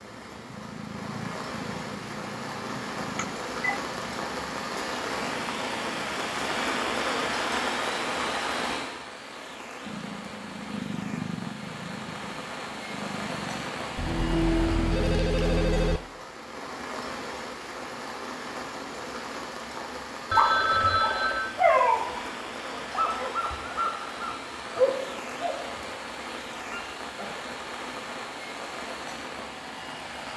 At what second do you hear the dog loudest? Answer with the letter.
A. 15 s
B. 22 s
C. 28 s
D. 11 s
B.